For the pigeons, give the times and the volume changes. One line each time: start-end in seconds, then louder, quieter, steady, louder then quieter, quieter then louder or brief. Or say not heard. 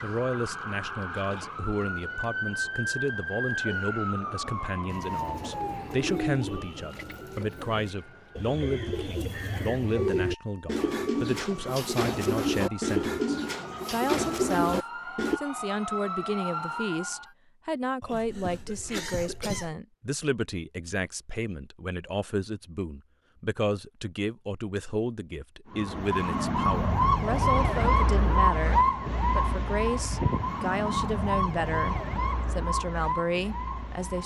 4.8-15.4 louder.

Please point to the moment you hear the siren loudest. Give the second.
28 s.